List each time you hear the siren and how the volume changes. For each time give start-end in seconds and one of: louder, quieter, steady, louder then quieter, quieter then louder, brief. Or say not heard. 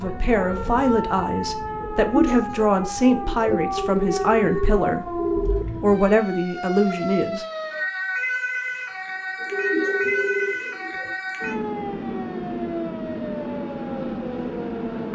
0.0-15.1 steady.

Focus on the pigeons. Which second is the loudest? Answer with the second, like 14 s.
2 s.